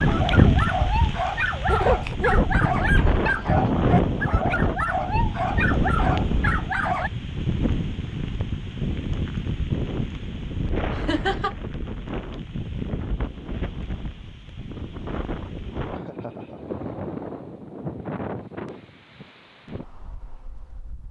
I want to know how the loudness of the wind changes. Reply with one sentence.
The volume of the wind goes down.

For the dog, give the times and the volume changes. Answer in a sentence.
You can hear the dog from 0.0 to 7.1 s, at a steady volume.